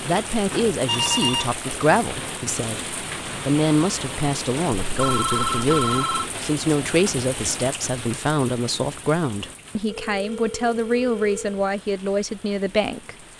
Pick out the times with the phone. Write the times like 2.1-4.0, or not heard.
0.8-1.6, 4.9-6.3, 9.8-11.6.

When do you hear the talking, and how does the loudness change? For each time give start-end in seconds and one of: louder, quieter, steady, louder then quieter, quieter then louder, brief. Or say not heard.
0.0-13.2 steady.